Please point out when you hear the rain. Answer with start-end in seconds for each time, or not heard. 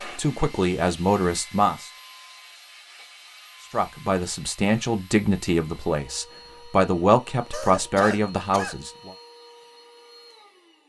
not heard.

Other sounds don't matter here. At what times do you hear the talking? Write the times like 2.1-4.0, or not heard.
0.0-1.9, 3.7-9.1.